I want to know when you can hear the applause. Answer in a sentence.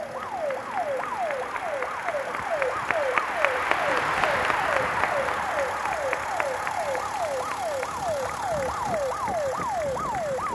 You can hear the applause from 0.0 to 10.5 s.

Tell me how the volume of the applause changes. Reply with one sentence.
The loudness of the applause goes up, then down.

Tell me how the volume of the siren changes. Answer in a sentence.
The volume of the siren stays about the same.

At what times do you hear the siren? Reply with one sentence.
The siren can be heard from 0.0 to 10.5 s.